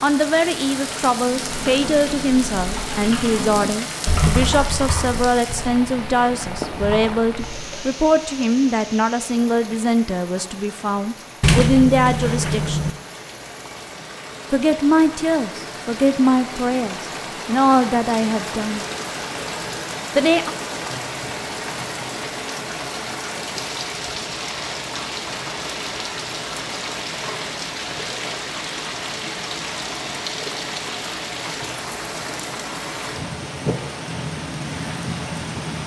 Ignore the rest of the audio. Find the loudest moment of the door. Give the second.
12 s.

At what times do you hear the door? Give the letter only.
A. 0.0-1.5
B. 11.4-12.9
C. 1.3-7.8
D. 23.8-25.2
B.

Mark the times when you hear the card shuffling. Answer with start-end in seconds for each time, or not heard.
not heard.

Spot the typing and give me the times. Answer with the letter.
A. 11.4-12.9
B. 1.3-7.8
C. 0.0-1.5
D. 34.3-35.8
B.